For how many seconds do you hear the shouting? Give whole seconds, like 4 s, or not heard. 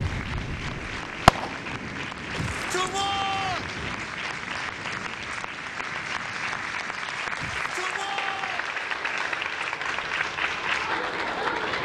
3 s.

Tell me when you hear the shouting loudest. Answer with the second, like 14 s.
3 s.